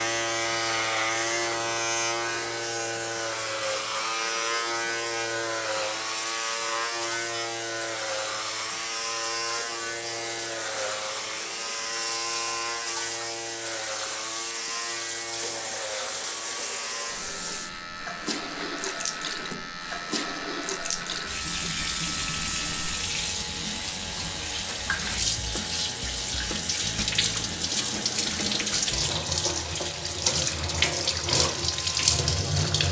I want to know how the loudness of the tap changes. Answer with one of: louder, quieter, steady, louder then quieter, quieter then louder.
louder.